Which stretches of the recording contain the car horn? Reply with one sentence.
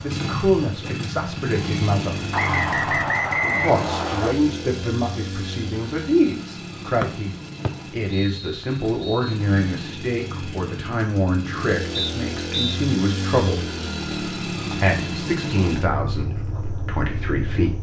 You can't hear the car horn here.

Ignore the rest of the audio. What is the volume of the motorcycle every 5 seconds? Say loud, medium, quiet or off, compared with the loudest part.
loud, medium, loud, loud.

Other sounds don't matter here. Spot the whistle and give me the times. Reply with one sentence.
You can hear the whistle from 2.3 to 4.3 s, from 7.0 to 9.3 s and from 11.9 to 12.6 s.